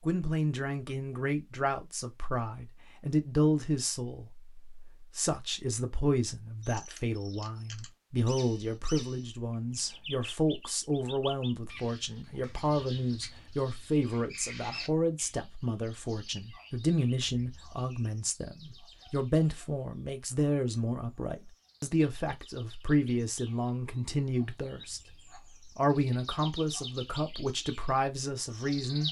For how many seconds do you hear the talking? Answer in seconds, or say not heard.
28 s.